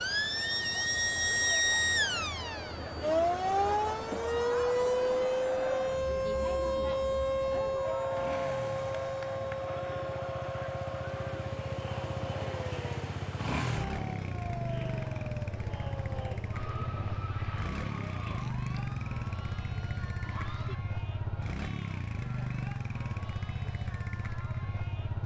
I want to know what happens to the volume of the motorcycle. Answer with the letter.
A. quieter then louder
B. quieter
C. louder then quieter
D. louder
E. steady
D.